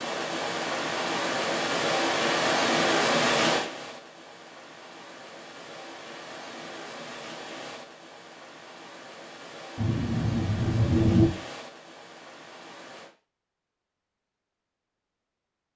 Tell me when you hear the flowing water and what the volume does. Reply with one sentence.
The flowing water can be heard from 0.0 to 13.1 s, getting quieter.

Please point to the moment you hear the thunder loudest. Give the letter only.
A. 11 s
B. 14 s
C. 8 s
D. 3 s
A.